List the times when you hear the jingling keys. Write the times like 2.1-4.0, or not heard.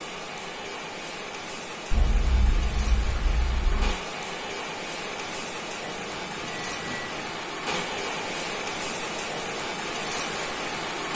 1.9-4.0, 6.0-7.3.